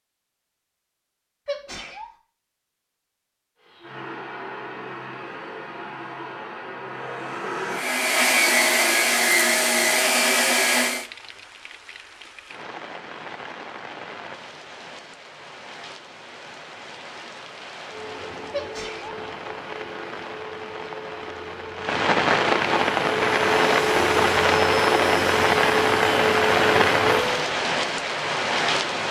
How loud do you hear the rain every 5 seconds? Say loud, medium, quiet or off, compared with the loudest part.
off, off, quiet, quiet, loud, loud.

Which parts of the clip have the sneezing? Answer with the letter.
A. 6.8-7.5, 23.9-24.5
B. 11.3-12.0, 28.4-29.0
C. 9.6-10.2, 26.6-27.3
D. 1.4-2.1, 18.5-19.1
D.